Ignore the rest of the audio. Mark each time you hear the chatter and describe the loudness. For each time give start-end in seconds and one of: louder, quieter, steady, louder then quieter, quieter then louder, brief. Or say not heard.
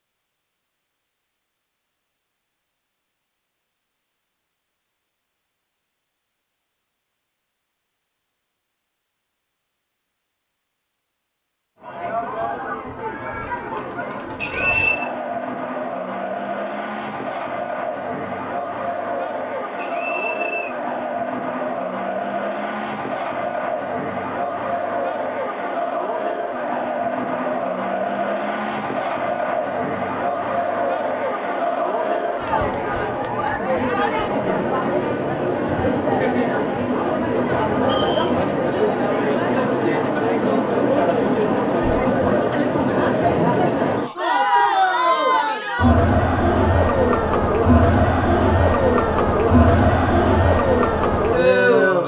11.8-52.0 louder.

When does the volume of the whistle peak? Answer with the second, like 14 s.
15 s.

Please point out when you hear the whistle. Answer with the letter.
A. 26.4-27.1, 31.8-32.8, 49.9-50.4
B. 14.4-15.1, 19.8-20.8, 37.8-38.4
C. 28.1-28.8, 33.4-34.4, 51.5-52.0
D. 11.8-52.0
B.